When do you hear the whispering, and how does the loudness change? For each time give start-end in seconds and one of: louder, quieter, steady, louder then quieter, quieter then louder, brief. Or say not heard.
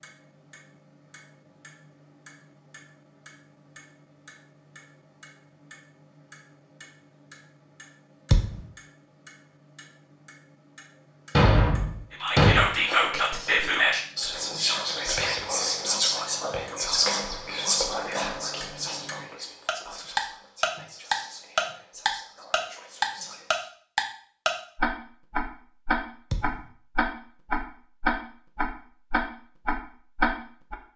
12.1-23.7 quieter.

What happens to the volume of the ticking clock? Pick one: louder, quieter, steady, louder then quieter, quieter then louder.
louder.